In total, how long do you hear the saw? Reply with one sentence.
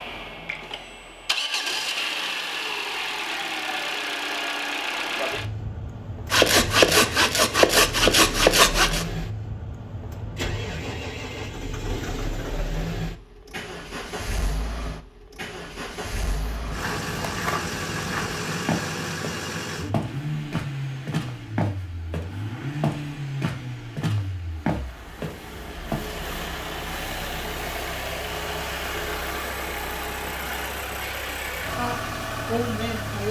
You can hear the saw for 3 seconds altogether.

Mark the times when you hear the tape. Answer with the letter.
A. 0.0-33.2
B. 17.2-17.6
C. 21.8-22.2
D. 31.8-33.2
B.